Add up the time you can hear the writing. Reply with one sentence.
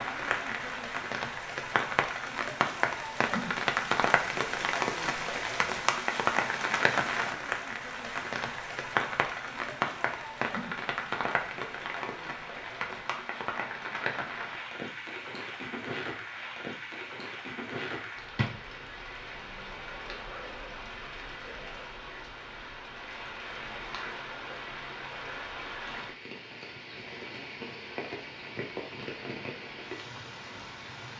The writing can't be heard in this clip.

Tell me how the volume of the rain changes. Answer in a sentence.
The loudness of the rain goes down.